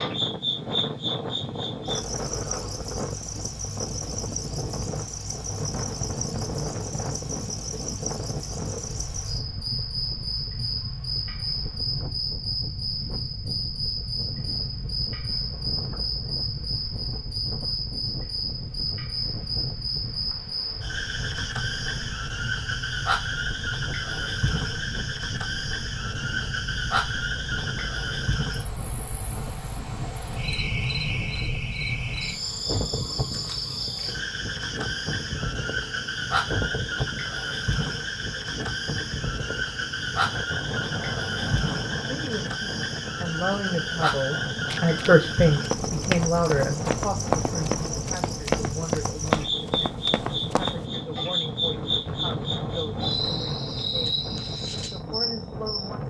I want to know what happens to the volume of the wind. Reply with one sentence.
The loudness of the wind stays about the same.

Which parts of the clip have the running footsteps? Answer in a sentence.
The running footsteps can be heard from 44.7 to 50.8 s.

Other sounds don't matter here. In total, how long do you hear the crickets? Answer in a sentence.
You can hear the crickets for 56 seconds altogether.